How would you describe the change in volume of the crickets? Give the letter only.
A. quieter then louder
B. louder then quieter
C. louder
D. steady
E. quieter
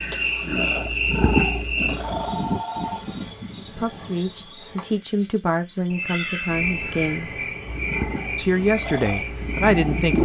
E.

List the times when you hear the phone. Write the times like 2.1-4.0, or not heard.
2.1-3.2, 5.9-7.0.